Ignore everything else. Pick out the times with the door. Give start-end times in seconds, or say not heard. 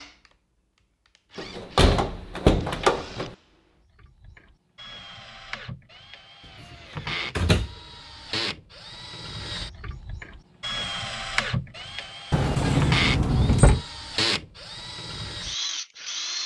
1.4-3.3, 7.3-7.8, 12.3-13.8.